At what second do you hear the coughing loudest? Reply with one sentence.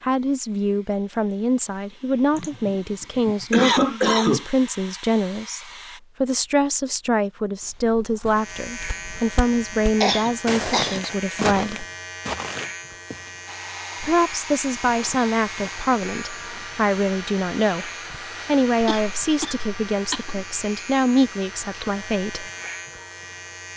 The loudest moment of the coughing is at 4 seconds.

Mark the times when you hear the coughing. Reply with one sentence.
You can hear the coughing from 2.4 to 4.5 s, from 10.0 to 11.1 s and from 18.8 to 20.4 s.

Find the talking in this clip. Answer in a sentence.
You can hear the talking from 0.0 to 11.8 s and from 14.0 to 22.5 s.